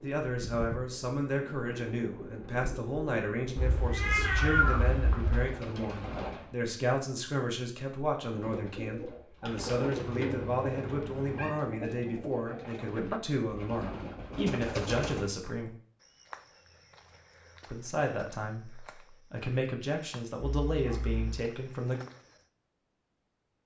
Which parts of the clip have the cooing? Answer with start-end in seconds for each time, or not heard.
0.0-6.5, 8.3-15.3.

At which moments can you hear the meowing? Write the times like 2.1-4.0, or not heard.
3.5-5.5, 9.9-11.6, 20.4-21.4.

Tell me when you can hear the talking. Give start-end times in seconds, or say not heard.
0.0-15.7, 17.6-22.0.